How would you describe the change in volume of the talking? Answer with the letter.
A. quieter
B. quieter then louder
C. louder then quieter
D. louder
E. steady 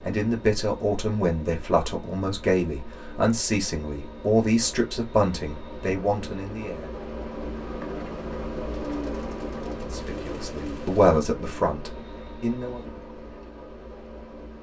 B.